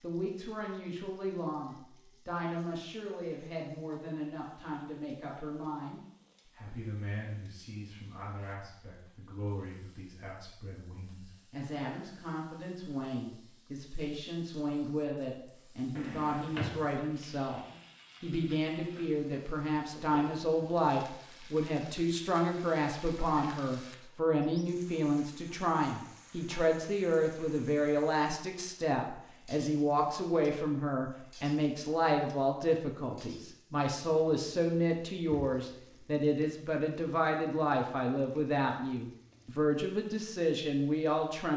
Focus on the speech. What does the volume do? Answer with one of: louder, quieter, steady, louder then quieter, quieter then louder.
louder.